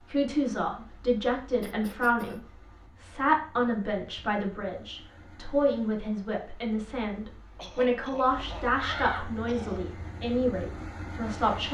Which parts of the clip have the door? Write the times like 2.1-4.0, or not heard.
8.8-9.5.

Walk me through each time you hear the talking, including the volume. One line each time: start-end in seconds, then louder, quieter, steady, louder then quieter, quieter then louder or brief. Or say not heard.
0.0-11.6 steady.